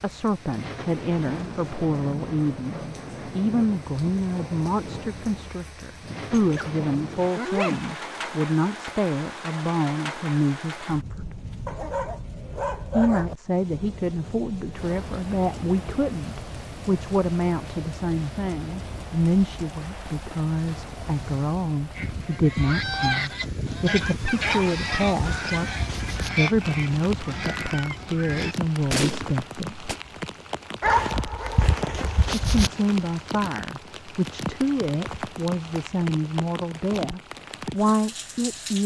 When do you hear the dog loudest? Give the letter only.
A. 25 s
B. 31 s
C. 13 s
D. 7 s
B.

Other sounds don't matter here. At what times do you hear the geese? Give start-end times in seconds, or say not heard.
21.9-29.9.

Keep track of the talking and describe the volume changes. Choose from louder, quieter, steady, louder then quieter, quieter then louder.
steady.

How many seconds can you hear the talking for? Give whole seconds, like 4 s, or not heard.
34 s.